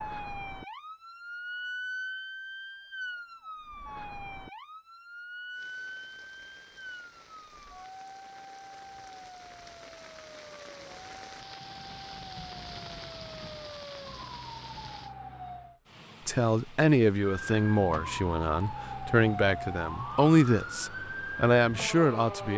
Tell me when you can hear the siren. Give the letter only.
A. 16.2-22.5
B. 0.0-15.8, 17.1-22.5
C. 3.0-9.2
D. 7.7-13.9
B.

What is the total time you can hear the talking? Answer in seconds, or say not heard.
6 s.